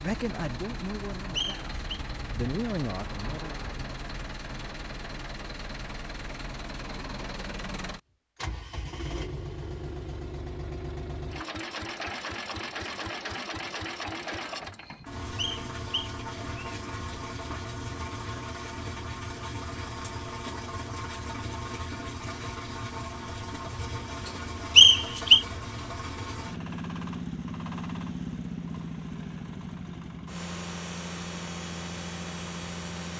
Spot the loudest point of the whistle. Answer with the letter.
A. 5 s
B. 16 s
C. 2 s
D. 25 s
D.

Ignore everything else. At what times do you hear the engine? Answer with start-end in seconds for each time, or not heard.
0.0-33.1.